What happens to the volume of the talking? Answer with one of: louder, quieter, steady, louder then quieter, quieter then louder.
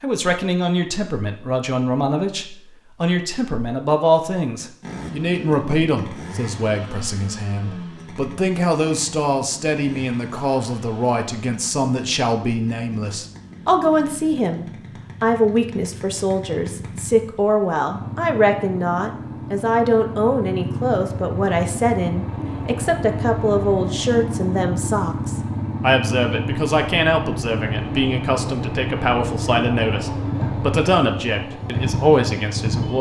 steady.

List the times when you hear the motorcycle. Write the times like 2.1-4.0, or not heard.
4.8-32.9.